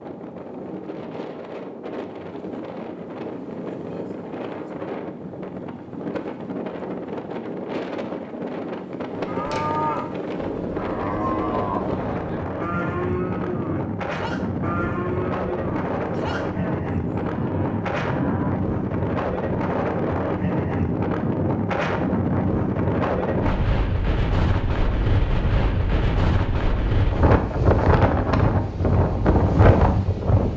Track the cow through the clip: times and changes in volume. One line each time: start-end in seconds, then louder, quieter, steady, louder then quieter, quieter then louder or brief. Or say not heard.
9.2-18.5 quieter.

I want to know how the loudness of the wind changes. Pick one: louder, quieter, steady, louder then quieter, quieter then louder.
louder.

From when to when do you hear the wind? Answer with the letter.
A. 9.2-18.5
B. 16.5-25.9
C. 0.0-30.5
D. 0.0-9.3
C.